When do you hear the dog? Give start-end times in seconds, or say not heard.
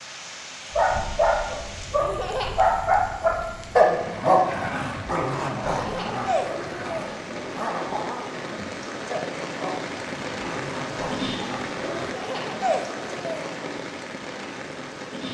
0.7-12.2.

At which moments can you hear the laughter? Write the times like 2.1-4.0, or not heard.
2.0-2.6, 5.7-7.2, 11.9-13.6.